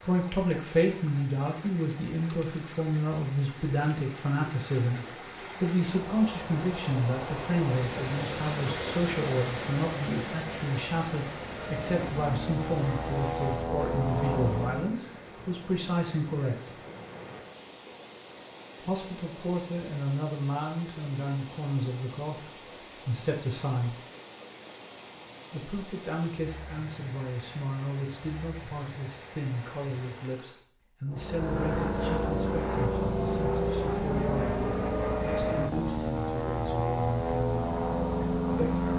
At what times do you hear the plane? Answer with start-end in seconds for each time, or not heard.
11.4-15.0, 31.1-38.9.